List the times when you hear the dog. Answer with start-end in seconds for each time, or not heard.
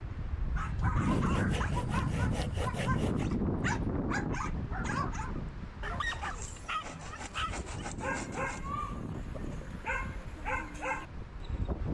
0.6-11.8.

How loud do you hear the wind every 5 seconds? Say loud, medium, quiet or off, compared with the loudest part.
loud, medium, medium.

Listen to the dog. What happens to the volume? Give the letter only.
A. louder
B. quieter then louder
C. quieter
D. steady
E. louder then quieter
D.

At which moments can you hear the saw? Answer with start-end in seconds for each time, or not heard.
1.1-3.2, 6.0-8.7.